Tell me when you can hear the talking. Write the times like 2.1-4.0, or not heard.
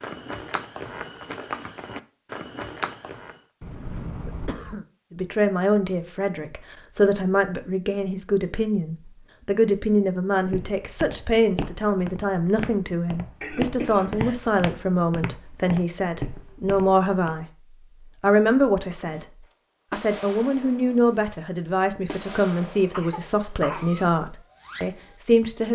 5.1-19.2, 19.9-25.6.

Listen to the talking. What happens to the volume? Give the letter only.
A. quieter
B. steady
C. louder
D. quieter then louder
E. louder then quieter
B.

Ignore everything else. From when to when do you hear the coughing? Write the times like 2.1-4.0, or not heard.
3.6-4.8, 13.4-14.4, 22.9-23.9.